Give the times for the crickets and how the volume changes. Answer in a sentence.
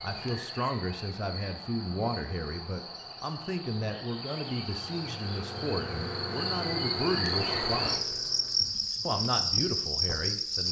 The crickets can be heard from 0.0 to 10.6 s, getting louder.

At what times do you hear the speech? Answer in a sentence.
You can hear the speech from 0.0 to 8.1 s and from 9.1 to 10.6 s.